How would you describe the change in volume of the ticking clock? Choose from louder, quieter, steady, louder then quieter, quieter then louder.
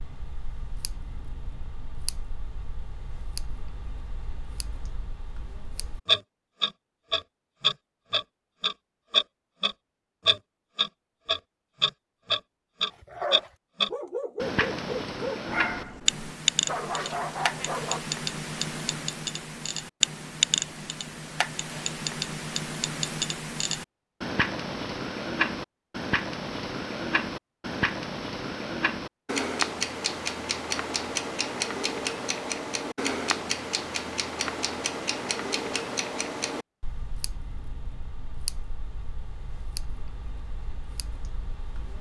louder then quieter.